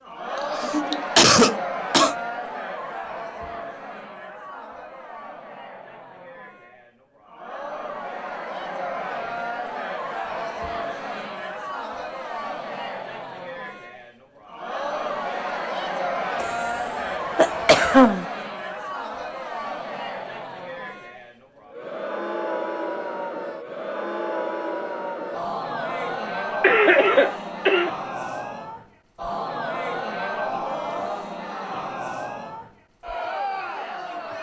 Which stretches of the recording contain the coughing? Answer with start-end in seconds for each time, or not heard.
0.3-2.1, 16.4-18.2, 26.6-27.9.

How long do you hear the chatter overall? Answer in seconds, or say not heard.
34 s.